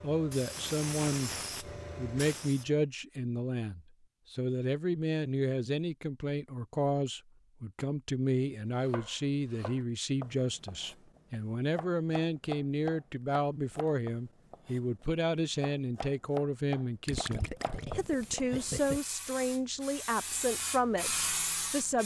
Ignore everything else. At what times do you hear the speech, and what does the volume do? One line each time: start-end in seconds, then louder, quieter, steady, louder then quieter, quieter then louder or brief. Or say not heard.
0.0-1.3 brief
1.9-22.0 steady.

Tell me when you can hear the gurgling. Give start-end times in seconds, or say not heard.
17.1-19.0.